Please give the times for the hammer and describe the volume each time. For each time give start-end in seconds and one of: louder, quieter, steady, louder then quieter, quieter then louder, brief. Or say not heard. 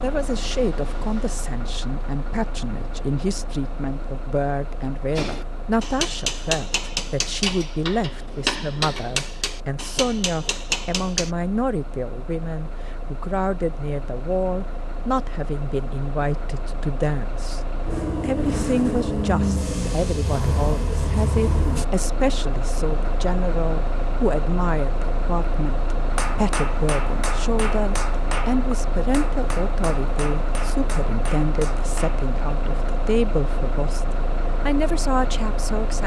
5.2-11.3 steady
26.1-32.2 quieter.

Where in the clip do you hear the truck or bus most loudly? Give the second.
19 s.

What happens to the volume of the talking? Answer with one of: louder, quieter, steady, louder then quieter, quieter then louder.
steady.